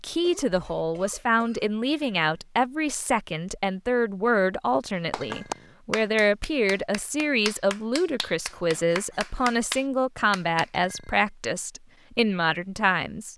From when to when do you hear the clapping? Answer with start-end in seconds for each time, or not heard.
5.1-10.7.